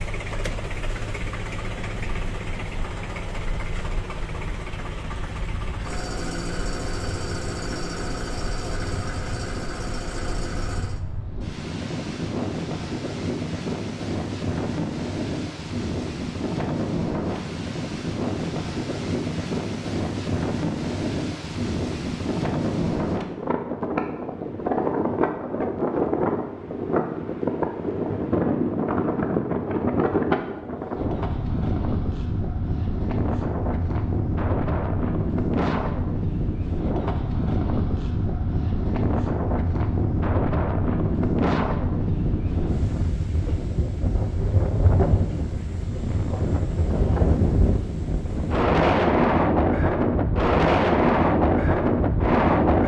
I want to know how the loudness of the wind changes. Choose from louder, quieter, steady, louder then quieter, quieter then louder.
louder.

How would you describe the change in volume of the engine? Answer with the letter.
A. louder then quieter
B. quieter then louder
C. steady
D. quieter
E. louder
C.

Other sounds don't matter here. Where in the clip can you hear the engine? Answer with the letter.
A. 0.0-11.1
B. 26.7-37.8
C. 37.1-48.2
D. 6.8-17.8
A.